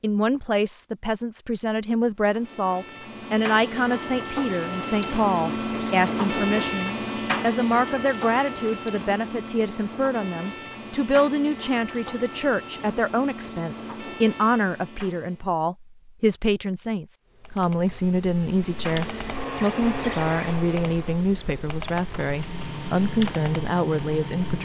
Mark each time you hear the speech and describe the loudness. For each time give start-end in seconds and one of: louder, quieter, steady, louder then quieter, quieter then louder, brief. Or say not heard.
0.0-24.6 steady.